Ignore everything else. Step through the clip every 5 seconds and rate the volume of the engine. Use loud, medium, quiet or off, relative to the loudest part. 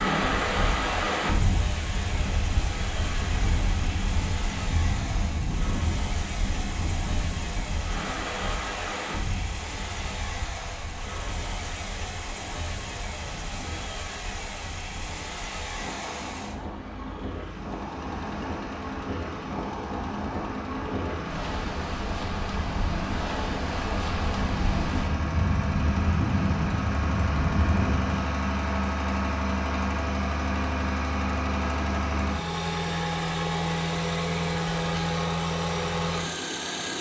medium, medium, medium, medium, medium, loud, loud, loud.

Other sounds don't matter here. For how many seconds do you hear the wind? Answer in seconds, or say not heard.
28 s.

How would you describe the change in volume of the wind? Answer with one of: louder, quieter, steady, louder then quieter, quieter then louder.
quieter then louder.